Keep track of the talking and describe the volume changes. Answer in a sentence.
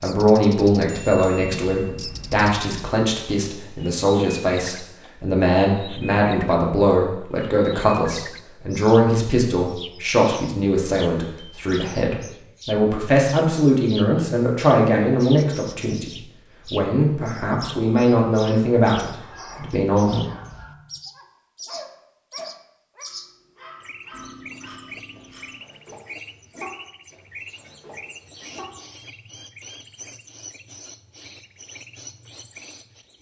The volume of the talking stays about the same.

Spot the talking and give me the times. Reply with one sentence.
You can hear the talking from 0.0 to 20.2 s.